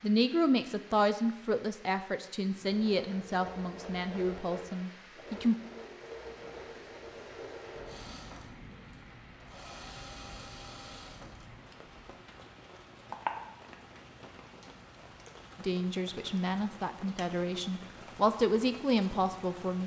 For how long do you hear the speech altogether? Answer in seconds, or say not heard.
10 s.